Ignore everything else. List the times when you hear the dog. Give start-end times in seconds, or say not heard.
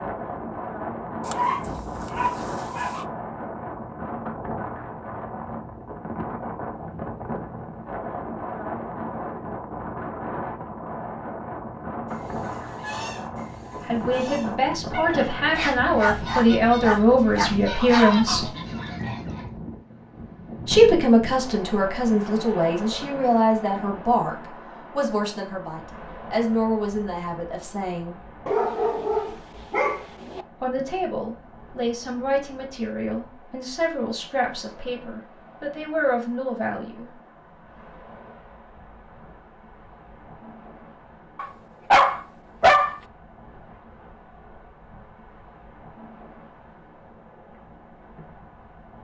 1.2-3.0, 15.6-18.1, 28.4-30.4, 41.4-43.0.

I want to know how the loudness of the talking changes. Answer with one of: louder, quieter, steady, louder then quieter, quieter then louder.
quieter.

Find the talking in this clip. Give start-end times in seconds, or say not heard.
13.8-18.5, 20.6-24.4, 24.9-28.2, 30.6-37.1.